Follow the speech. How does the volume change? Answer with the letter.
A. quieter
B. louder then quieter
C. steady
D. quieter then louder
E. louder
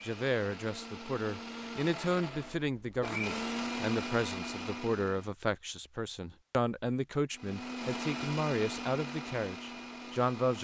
C.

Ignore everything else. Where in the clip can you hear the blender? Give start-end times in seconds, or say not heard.
0.0-5.3, 7.3-10.5.